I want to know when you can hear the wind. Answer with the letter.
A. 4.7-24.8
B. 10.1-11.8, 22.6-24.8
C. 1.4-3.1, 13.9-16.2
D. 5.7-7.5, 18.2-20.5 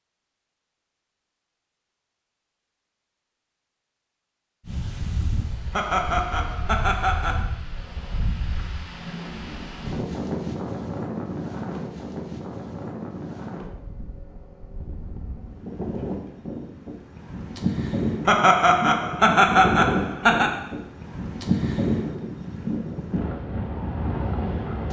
A.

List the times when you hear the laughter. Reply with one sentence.
The laughter can be heard from 5.7 to 7.5 s and from 18.2 to 20.5 s.